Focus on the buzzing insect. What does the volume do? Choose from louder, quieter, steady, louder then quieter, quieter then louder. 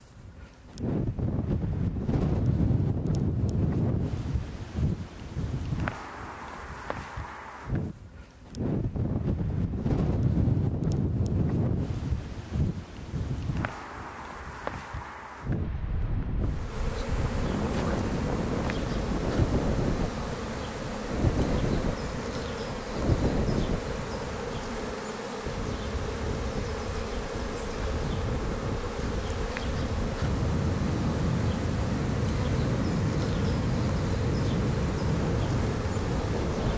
steady.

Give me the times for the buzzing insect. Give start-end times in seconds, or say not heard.
16.4-36.7.